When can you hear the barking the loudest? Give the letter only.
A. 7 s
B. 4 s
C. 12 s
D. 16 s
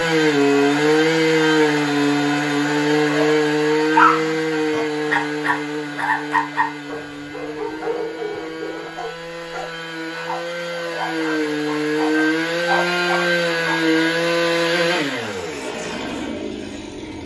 B.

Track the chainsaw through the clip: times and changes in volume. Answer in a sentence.
You can hear the chainsaw from 0.0 to 17.2 s, getting quieter then louder.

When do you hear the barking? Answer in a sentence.
You can hear the barking from 3.0 to 13.9 s.